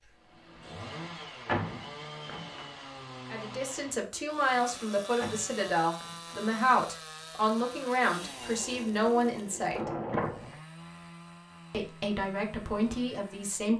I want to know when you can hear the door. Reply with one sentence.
You can hear the door from 0.9 to 2.7 s, from 4.6 to 6.4 s and from 9.8 to 10.6 s.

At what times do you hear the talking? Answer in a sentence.
You can hear the talking from 3.3 to 9.9 s and from 11.7 to 13.7 s.